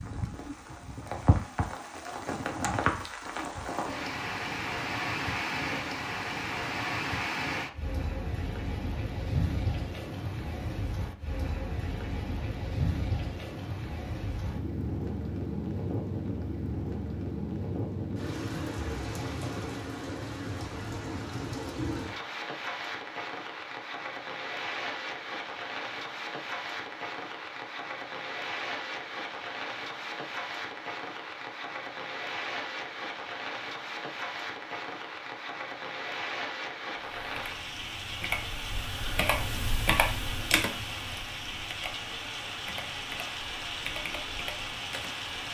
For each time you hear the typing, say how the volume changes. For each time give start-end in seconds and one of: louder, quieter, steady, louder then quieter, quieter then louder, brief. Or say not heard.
37.0-45.4 louder then quieter.